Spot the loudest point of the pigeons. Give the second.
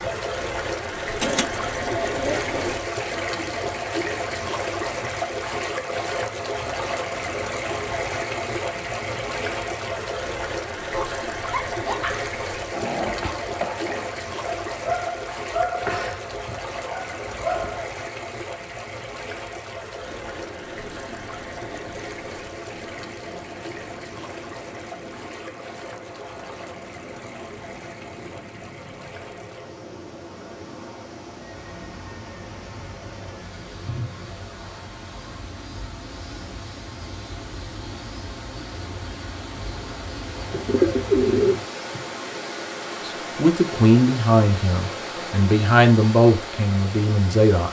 41 s.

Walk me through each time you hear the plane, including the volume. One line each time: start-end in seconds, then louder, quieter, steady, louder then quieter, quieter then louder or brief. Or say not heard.
19.9-41.2 steady.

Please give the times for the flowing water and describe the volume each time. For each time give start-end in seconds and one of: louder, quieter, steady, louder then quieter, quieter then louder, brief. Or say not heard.
0.0-47.6 quieter then louder.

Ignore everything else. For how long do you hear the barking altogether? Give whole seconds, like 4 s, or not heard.
7 s.